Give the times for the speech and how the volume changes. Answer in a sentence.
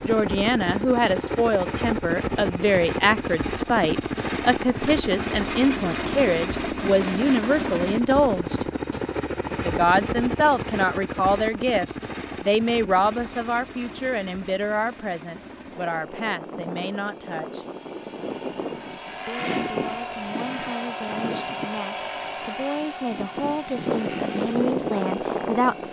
You can hear the speech from 0.0 to 8.7 s, at a steady volume; from 9.7 to 17.6 s, getting quieter; and from 19.2 to 25.8 s, getting louder.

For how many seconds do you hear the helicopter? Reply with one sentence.
You can hear the helicopter for 26 seconds altogether.